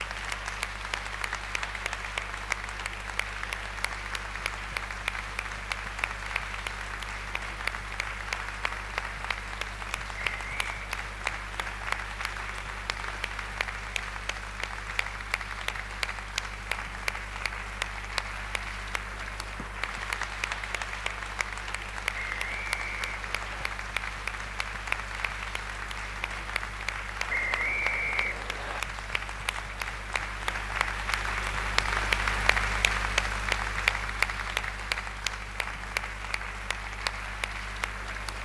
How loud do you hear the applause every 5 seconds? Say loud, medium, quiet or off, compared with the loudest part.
medium, medium, medium, medium, medium, medium, loud, medium.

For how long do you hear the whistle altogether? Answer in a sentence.
You can hear the whistle for 4 seconds altogether.